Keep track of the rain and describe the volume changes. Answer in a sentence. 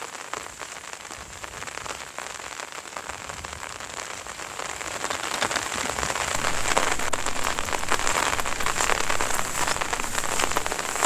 The volume of the rain goes up.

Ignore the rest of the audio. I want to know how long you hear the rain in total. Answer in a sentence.
You can hear the rain for 11 seconds altogether.